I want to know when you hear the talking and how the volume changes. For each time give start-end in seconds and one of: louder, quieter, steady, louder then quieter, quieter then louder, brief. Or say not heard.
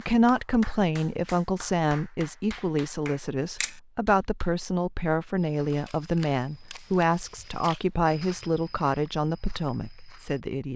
0.0-10.7 steady.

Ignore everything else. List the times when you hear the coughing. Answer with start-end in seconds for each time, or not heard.
not heard.